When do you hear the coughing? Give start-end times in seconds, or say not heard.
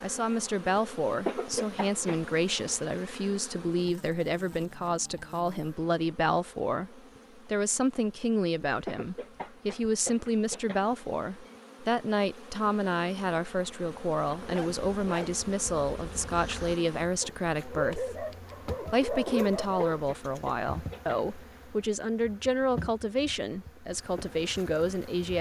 1.2-2.2, 8.8-10.8, 19.2-21.2.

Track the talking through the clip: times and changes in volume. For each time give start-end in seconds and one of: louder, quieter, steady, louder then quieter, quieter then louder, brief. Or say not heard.
0.0-25.3 steady.